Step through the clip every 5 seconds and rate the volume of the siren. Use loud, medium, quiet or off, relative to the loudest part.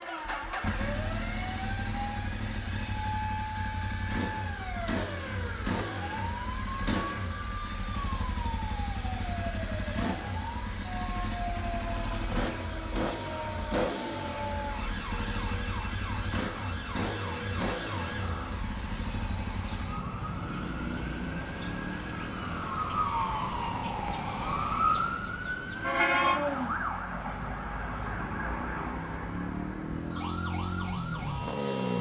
medium, medium, medium, medium, loud, loud, medium.